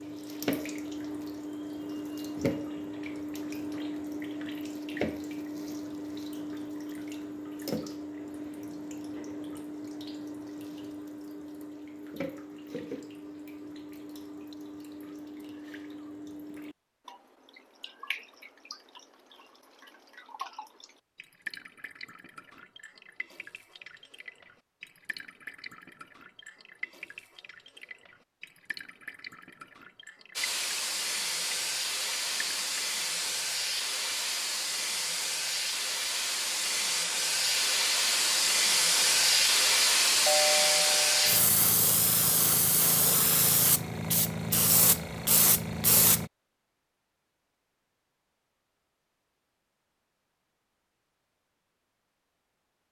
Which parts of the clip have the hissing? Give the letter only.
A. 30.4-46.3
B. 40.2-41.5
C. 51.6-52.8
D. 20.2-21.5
A.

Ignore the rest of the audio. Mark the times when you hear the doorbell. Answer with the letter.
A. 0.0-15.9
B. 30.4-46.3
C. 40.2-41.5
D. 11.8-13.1
C.